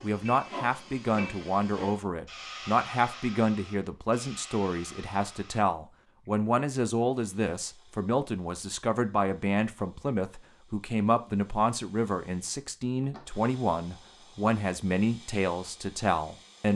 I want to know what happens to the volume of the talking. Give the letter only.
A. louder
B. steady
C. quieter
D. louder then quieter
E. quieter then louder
B.